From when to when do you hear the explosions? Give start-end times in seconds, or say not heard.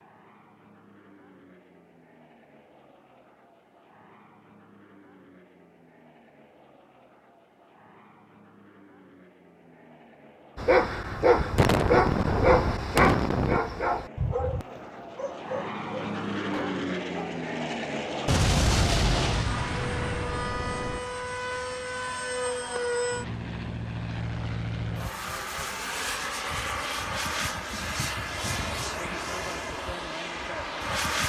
11.6-13.6, 18.2-21.0.